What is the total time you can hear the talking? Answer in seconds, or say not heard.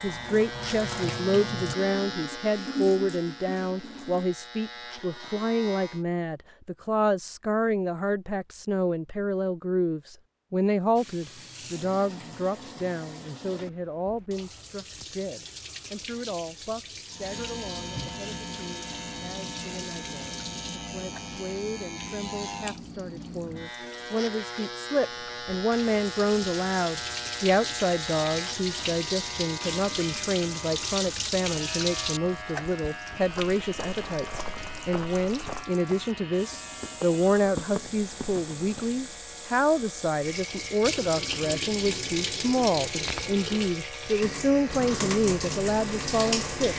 47 s.